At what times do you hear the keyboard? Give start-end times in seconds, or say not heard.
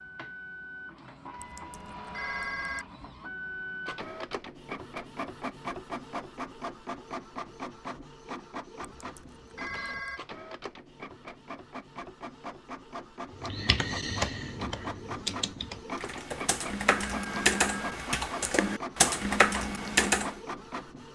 13.4-20.4.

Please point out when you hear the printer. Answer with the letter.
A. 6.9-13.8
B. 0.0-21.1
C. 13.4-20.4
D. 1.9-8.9
B.